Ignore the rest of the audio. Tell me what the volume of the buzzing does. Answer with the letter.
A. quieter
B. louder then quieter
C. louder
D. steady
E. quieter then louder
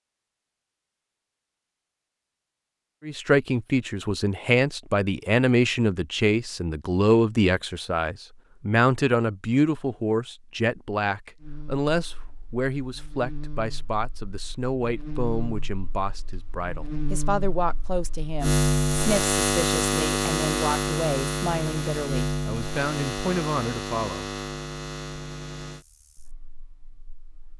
B.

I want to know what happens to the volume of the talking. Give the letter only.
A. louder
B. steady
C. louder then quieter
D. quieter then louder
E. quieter
E.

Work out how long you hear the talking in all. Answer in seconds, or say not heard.
21 s.